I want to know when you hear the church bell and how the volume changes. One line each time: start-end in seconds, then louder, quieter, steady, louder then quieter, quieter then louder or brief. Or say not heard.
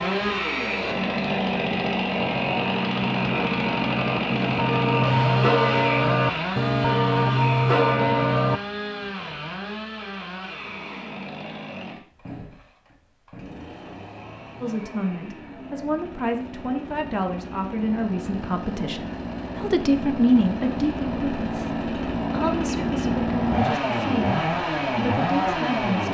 0.1-8.6 louder.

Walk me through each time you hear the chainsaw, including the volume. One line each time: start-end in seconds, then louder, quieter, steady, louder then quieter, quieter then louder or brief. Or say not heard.
0.0-26.0 quieter then louder.